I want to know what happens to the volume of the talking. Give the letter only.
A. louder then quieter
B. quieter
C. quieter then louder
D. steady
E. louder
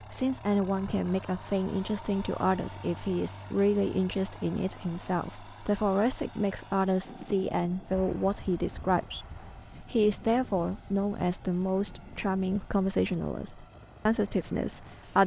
D.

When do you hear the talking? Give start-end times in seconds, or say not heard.
0.1-15.2.